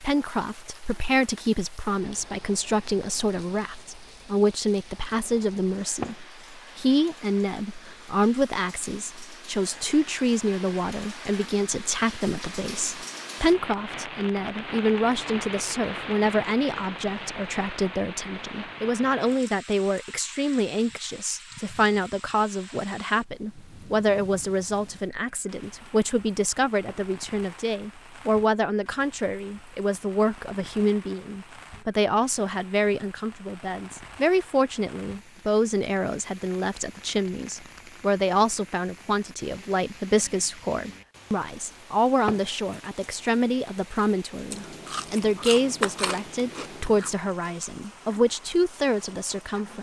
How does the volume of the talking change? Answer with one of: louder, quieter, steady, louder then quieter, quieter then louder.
steady.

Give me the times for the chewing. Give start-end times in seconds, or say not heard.
44.5-47.1.